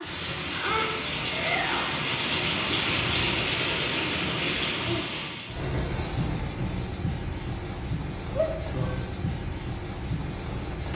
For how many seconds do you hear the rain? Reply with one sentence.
You can hear the rain for 11 seconds altogether.